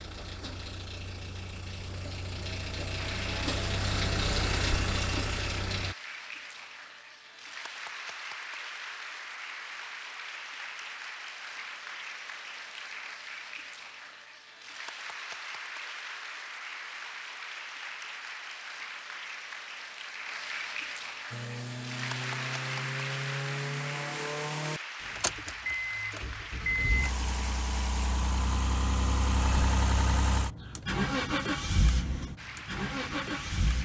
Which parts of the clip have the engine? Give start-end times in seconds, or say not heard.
0.0-6.0, 21.3-33.8.